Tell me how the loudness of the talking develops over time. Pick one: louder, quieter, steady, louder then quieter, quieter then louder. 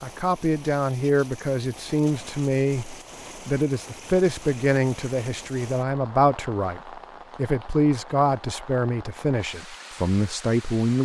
steady.